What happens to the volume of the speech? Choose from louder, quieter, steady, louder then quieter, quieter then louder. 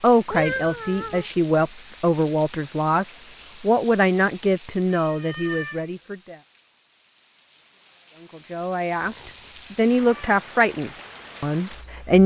quieter then louder.